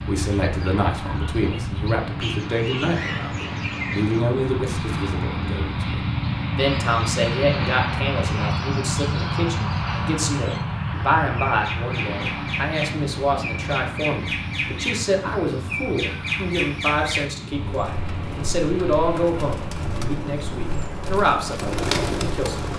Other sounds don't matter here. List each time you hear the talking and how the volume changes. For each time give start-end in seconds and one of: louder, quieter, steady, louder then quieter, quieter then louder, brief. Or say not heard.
0.1-22.7 steady.